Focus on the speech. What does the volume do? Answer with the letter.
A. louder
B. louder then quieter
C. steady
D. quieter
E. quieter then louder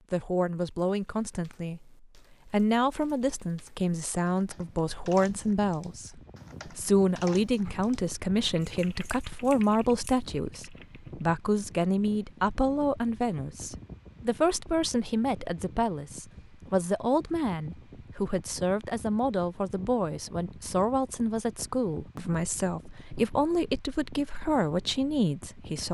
C.